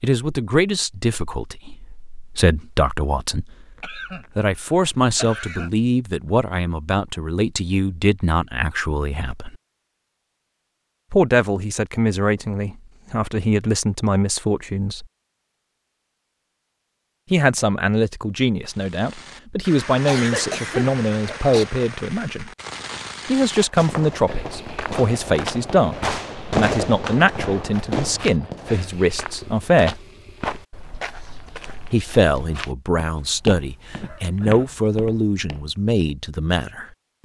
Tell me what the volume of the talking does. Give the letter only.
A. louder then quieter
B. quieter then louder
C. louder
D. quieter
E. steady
E.